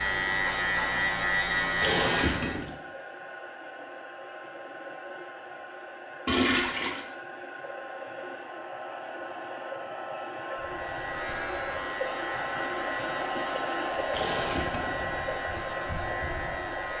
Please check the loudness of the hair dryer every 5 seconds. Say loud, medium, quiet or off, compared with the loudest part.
medium, medium, loud, loud.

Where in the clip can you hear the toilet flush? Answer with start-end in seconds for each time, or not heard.
1.8-2.8, 6.2-7.0, 14.1-15.4.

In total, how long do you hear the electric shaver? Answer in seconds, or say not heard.
9 s.